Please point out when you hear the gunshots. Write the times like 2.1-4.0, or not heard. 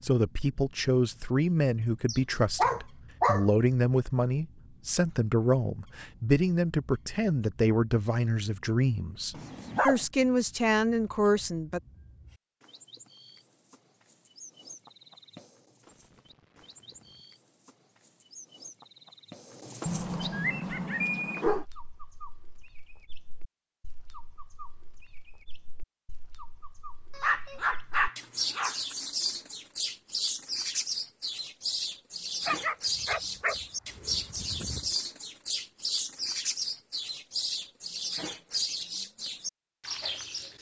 15.8-17.2.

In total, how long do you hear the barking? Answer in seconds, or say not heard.
8 s.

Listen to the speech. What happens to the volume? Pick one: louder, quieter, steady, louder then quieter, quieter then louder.
steady.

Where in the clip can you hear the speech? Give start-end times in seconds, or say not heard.
0.0-11.8.